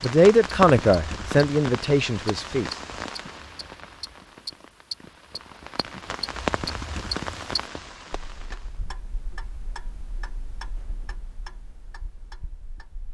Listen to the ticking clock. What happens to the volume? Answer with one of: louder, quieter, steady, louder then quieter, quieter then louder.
quieter.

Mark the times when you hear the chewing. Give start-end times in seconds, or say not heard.
not heard.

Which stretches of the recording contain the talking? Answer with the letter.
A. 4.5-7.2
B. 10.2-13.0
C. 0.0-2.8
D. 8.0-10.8
C.